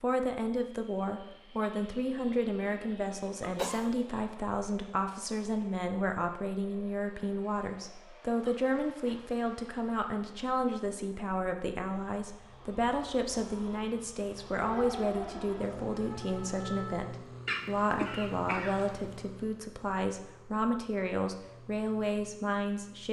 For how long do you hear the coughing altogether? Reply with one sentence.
The coughing can be heard for 3 seconds in total.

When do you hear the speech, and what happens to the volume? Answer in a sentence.
The speech can be heard from 0.0 to 23.0 s, at a steady volume.